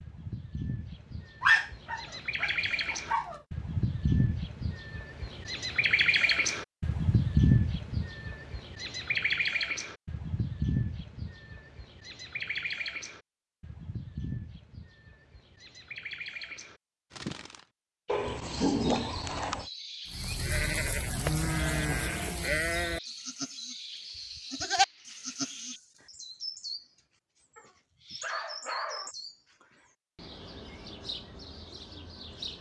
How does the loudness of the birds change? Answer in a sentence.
The loudness of the birds goes down.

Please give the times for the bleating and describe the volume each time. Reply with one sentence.
The bleating can be heard from 20.1 to 25.8 s, getting quieter then louder.